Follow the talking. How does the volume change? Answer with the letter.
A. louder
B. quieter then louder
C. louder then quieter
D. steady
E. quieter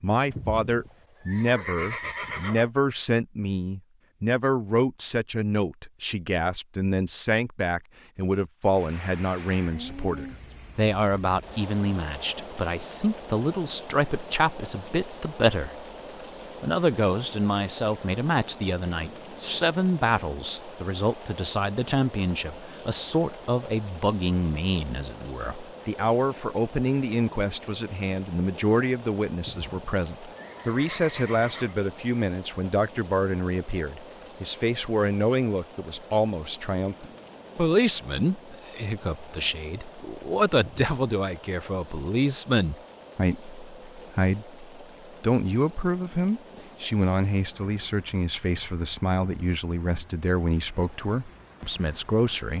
D.